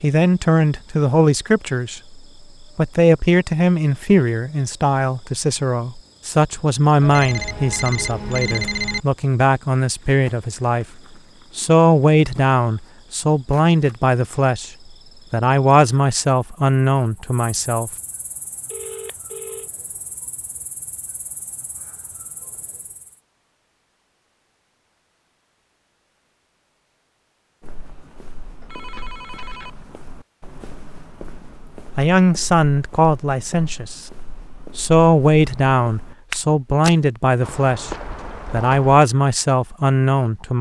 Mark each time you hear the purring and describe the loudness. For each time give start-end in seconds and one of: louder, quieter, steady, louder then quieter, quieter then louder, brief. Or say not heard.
not heard.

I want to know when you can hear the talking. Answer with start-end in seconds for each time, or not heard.
0.0-10.8, 11.6-14.7, 15.3-17.9, 31.9-34.0, 34.8-40.5.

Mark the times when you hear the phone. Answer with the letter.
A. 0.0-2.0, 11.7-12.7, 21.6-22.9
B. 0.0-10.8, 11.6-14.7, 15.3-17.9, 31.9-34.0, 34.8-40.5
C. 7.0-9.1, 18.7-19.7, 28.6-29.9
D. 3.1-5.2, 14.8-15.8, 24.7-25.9
C.